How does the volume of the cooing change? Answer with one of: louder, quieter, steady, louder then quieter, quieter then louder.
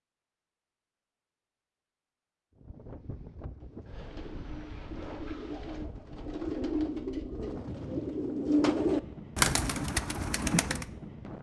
louder.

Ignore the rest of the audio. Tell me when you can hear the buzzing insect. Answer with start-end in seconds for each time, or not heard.
not heard.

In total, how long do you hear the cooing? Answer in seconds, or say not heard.
7 s.